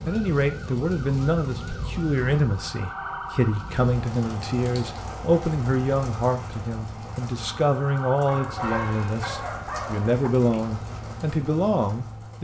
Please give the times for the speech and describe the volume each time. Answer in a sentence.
You can hear the speech from 0.1 to 12.3 s, at a steady volume.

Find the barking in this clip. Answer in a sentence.
The barking can be heard from 8.2 to 10.3 s.